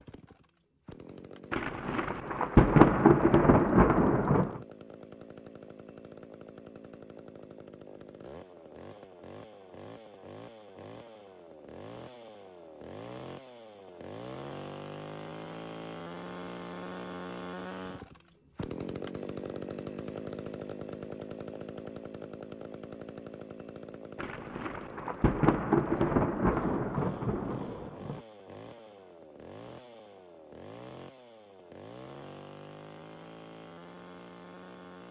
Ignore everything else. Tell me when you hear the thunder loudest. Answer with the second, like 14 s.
3 s.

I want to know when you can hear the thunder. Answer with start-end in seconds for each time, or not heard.
1.5-4.6, 24.1-28.2.